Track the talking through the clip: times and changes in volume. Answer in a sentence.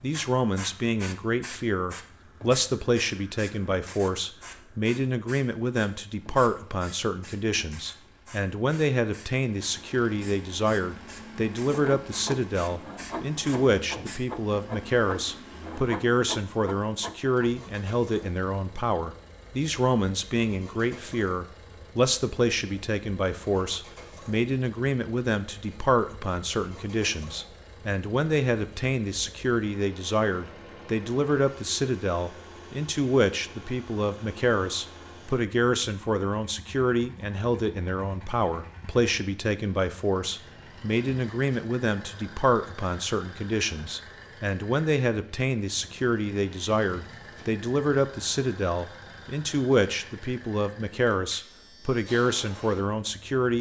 You can hear the talking from 0.0 to 53.5 s, at a steady volume.